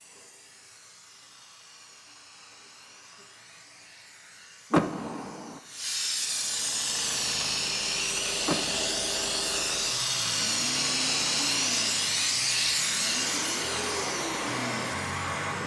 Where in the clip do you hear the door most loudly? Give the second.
5 s.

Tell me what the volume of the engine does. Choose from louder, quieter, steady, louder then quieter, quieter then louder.
louder.